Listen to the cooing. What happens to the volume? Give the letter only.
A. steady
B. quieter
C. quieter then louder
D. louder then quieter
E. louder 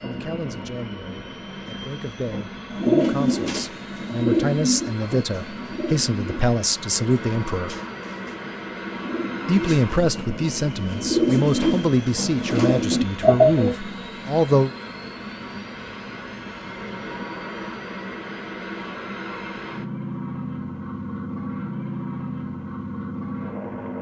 C.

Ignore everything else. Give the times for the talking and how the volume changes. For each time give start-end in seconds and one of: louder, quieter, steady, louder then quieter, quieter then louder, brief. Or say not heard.
0.0-7.8 louder
9.4-14.7 steady.